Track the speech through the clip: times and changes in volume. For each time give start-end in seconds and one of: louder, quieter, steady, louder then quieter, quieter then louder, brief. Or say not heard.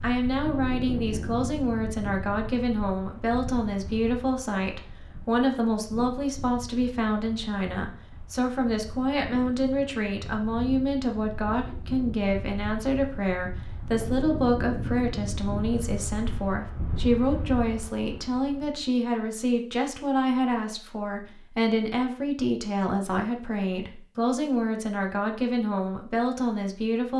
0.0-27.1 steady.